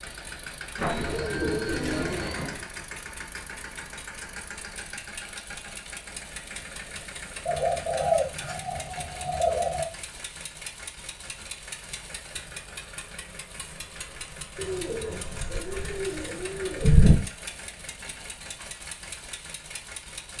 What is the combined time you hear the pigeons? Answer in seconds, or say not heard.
7 s.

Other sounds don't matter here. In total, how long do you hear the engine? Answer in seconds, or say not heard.
20 s.